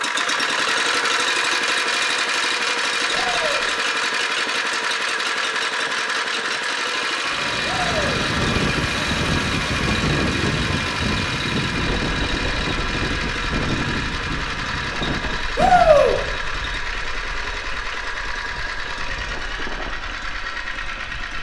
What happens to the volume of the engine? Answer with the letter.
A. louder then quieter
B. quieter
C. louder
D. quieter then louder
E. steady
B.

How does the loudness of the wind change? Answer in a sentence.
The loudness of the wind goes down.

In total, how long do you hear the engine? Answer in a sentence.
You can hear the engine for 21 seconds altogether.